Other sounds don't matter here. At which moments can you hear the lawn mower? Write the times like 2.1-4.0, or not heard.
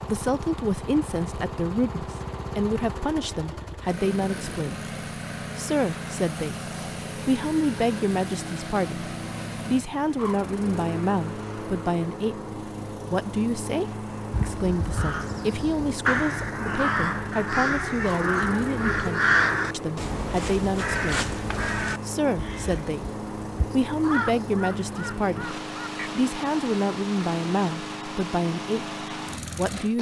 0.0-29.9.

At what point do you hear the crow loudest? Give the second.
19 s.